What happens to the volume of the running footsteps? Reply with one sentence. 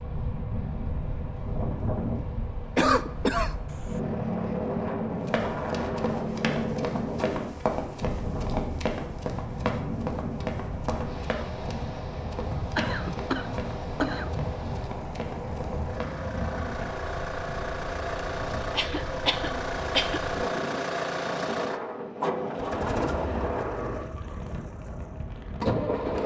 The loudness of the running footsteps goes down.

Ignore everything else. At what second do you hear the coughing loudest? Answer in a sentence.
The volume of the coughing peaks at 3 seconds.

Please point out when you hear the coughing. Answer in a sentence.
The coughing can be heard from 2.8 to 4.0 s, from 12.8 to 14.3 s and from 18.6 to 20.2 s.